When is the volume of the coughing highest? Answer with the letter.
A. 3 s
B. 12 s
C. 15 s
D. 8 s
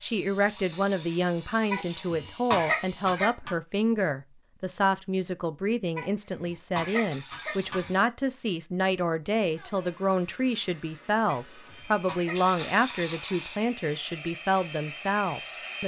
A.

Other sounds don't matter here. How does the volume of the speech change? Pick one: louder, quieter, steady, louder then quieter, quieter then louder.
steady.